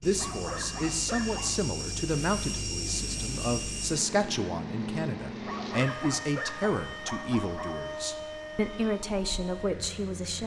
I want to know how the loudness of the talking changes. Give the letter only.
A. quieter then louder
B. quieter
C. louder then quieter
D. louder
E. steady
E.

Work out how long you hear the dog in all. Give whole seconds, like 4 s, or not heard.
4 s.